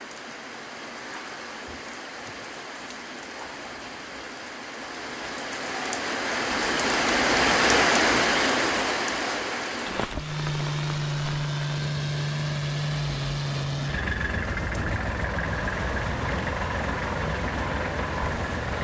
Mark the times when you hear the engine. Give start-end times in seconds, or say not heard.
10.1-18.7.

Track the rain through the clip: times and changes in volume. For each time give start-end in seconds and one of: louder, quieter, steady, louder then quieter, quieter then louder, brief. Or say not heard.
0.0-18.7 louder then quieter.